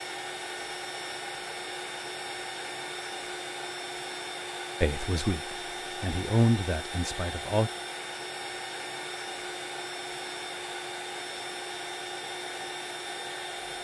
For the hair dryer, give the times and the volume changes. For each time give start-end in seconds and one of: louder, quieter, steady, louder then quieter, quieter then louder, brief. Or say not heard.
0.0-13.7 steady.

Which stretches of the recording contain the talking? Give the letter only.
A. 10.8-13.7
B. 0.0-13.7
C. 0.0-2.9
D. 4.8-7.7
D.